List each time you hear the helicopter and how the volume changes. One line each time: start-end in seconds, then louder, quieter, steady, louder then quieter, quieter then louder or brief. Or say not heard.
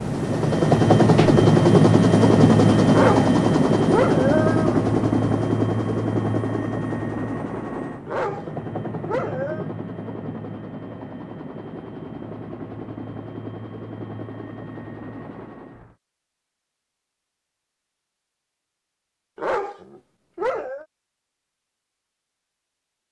0.0-15.9 quieter.